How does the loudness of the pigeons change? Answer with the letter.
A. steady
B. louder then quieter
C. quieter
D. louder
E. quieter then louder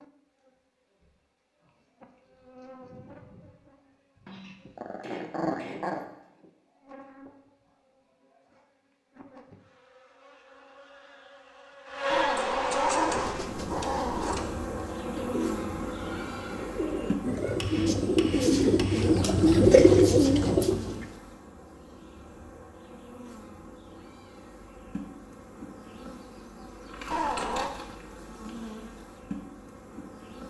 D.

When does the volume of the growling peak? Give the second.
13 s.